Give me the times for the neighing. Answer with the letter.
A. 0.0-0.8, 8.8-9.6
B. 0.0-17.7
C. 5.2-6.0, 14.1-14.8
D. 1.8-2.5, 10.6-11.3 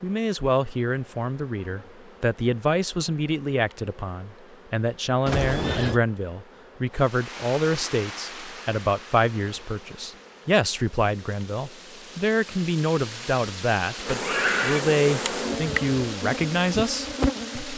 C.